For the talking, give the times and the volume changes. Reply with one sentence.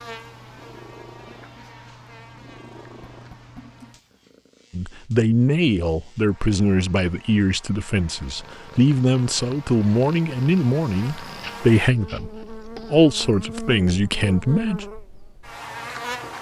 The talking can be heard from 4.8 to 14.8 s, at a steady volume.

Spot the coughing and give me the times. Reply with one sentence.
You can't hear the coughing here.